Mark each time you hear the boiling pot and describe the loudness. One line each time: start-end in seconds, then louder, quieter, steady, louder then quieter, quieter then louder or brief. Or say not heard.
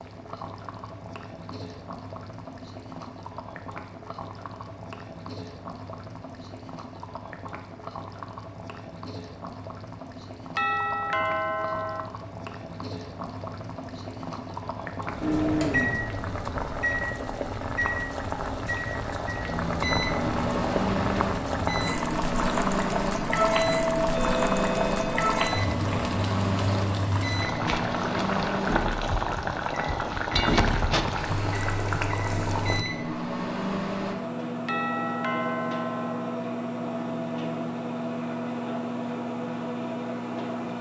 0.0-32.9 louder.